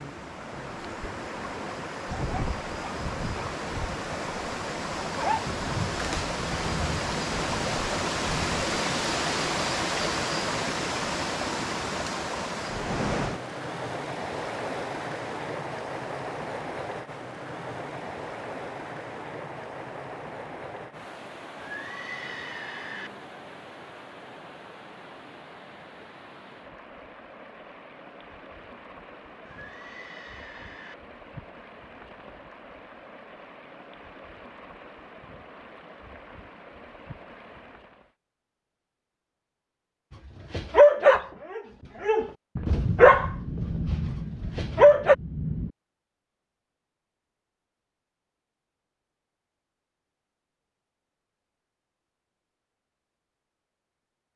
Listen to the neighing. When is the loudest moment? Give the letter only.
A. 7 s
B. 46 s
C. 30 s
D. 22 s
D.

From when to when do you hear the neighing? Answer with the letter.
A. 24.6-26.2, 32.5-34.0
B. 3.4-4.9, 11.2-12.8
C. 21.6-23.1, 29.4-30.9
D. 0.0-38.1
C.